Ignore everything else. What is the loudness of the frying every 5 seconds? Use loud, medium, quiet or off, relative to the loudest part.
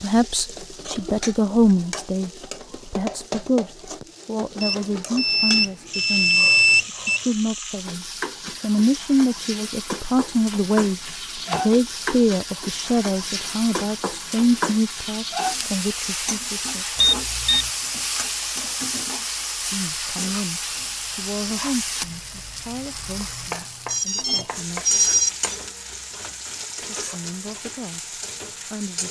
medium, medium, loud, loud, loud, medium.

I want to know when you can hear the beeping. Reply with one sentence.
The beeping can be heard from 4.6 to 7.2 s, from 16.9 to 17.7 s and from 23.9 to 25.6 s.